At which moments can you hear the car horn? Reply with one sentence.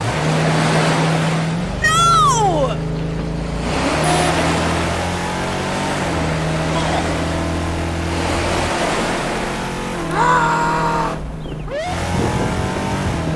You can hear the car horn from 4.0 to 4.5 s.